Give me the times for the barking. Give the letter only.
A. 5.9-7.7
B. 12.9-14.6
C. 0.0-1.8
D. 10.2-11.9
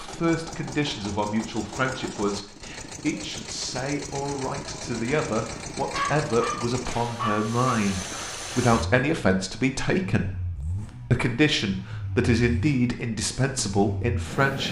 A.